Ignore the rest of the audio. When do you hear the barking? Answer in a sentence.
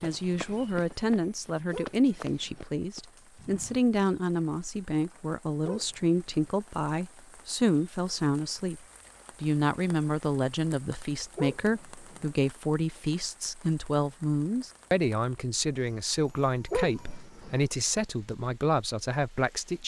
The barking can be heard from 1.7 to 2.6 s, from 5.7 to 6.5 s, from 11.3 to 12.2 s and from 16.7 to 17.6 s.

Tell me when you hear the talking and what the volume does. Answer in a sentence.
The talking can be heard from 0.0 to 8.8 s, at a steady volume; and from 9.4 to 19.8 s, at a steady volume.